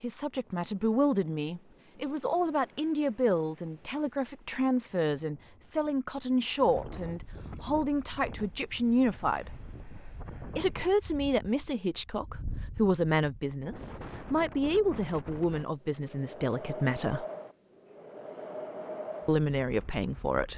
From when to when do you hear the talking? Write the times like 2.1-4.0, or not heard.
0.0-9.5, 10.6-17.2, 19.2-20.5.